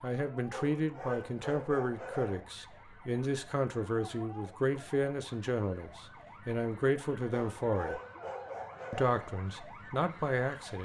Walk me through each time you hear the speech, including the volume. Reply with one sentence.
You can hear the speech from 0.0 to 8.0 s, at a steady volume; and briefly from 8.9 to 10.8 s.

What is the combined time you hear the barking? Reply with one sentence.
You can hear the barking for 4 seconds altogether.